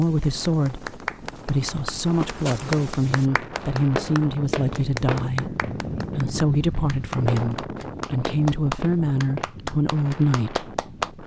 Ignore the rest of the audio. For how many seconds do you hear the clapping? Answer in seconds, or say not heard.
11 s.